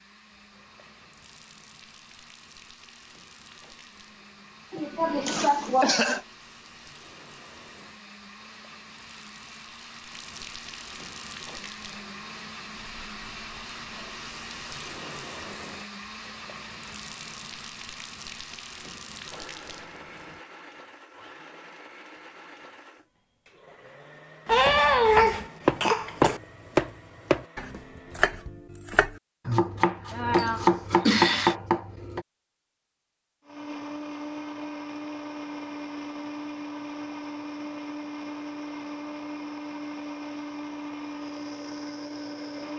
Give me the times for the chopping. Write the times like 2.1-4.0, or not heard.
24.5-32.2.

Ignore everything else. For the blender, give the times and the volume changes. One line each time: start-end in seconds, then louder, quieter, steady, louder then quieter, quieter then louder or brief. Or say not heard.
0.0-28.3 louder then quieter
33.5-42.7 steady.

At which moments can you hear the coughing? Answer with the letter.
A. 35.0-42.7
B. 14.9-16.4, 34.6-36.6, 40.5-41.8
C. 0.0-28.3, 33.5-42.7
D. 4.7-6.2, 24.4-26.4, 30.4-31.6
D.